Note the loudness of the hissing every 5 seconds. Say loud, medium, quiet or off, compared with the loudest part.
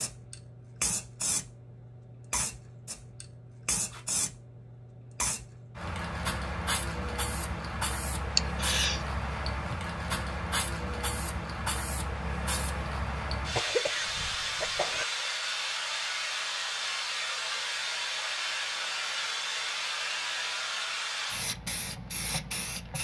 medium, loud, loud, loud, loud.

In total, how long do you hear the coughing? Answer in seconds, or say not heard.
2 s.